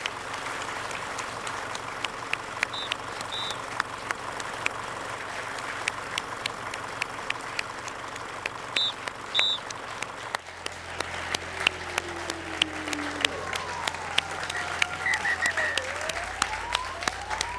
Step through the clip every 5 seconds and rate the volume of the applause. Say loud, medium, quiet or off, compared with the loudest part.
medium, medium, loud, loud.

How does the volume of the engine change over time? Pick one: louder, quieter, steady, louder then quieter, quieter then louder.
quieter.